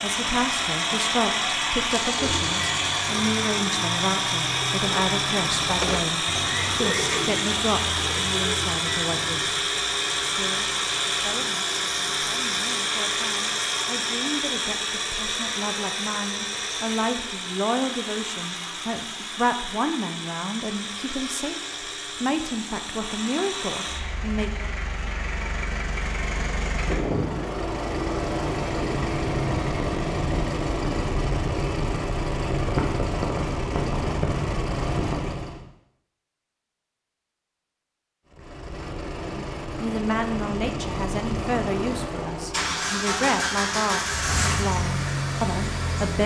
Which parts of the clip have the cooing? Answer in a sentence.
You can hear the cooing from 2.1 to 9.5 s.